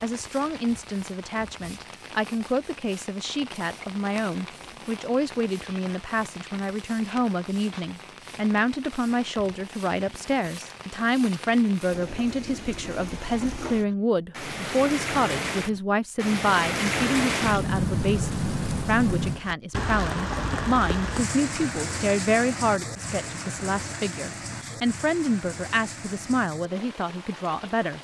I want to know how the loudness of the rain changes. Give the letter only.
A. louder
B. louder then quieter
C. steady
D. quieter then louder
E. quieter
B.